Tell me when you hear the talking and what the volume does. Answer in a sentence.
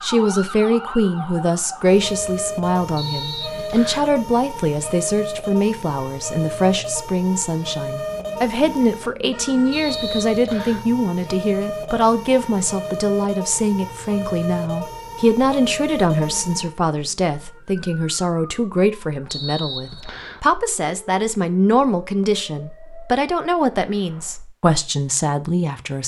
The talking can be heard from 0.0 to 26.0 s, at a steady volume.